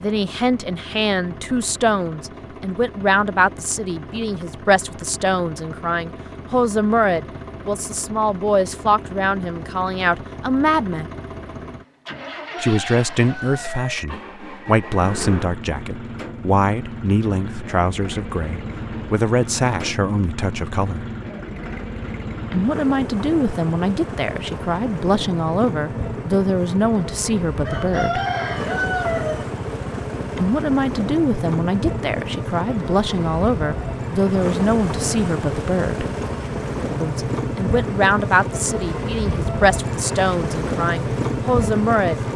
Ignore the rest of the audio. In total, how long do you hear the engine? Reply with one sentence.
You can hear the engine for 42 seconds altogether.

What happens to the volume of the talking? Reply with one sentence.
The volume of the talking stays about the same.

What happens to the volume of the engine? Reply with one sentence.
The loudness of the engine goes up.